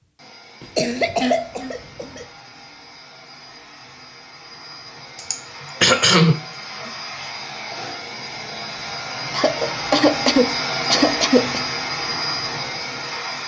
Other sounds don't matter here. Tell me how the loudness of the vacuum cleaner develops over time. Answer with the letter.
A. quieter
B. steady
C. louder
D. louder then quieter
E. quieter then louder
C.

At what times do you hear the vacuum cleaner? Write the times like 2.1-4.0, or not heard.
0.0-13.4.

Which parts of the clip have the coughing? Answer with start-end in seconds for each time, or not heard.
0.6-2.2, 5.2-6.9, 9.3-11.6.